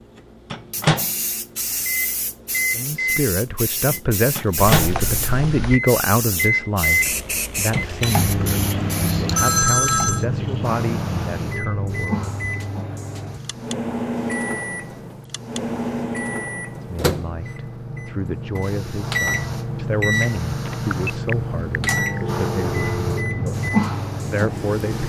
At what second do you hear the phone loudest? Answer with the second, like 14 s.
10 s.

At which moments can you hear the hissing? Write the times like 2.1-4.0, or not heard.
0.0-25.0.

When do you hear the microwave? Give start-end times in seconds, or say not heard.
0.0-25.0.